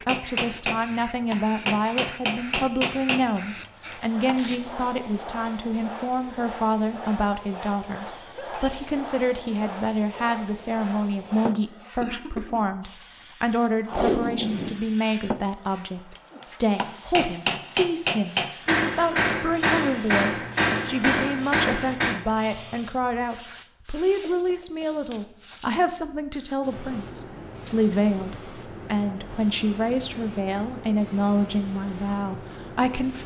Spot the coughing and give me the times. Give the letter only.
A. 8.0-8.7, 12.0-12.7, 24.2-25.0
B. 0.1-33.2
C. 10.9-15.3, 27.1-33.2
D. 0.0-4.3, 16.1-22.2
A.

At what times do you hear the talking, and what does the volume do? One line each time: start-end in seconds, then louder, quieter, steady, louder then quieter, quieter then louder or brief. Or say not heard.
0.1-33.2 steady.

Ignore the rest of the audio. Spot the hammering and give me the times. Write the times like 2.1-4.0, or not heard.
0.0-4.3, 16.1-22.2.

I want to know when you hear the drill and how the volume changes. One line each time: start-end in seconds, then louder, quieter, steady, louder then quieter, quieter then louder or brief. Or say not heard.
not heard.